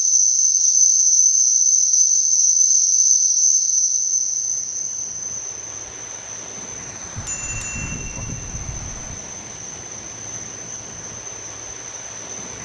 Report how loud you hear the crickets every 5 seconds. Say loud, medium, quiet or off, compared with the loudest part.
loud, quiet, quiet.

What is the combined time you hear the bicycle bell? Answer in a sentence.
You can hear the bicycle bell for 2 seconds altogether.